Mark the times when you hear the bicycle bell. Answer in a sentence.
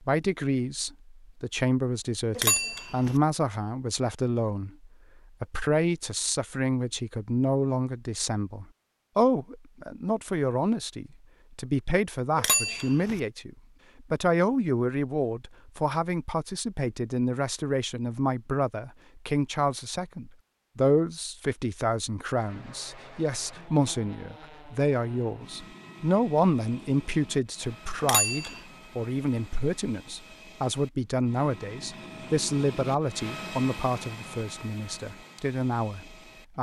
You can hear the bicycle bell from 2.4 to 3.1 s, from 12.3 to 13.2 s and from 28.0 to 28.6 s.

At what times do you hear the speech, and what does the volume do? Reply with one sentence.
You can hear the speech from 0.0 to 36.5 s, at a steady volume.